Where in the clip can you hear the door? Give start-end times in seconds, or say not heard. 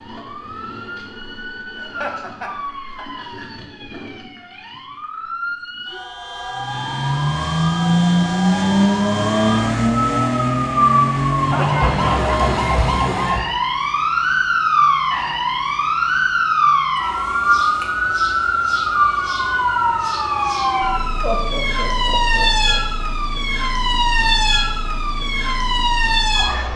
not heard.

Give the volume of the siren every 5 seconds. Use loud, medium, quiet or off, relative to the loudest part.
quiet, medium, loud, loud, loud, loud.